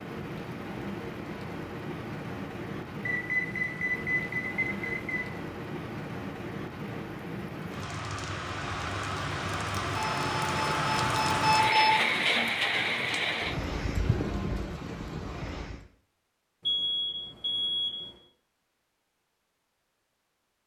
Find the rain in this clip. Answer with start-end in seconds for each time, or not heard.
0.0-15.8.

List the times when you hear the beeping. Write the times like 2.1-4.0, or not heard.
3.0-5.2, 9.9-11.9, 16.6-18.0.